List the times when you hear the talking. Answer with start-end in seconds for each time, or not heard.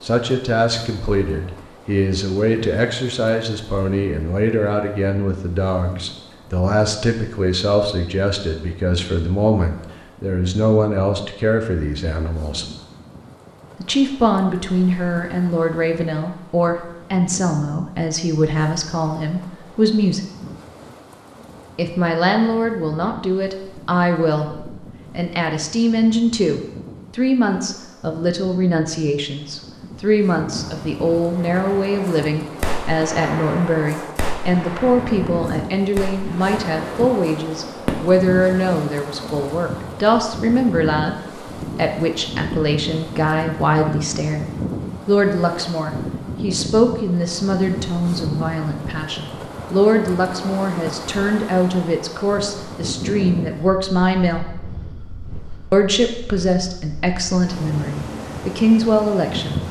0.0-12.7, 13.8-20.2, 21.8-44.5, 45.0-54.5, 55.7-59.6.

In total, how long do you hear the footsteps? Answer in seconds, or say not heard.
not heard.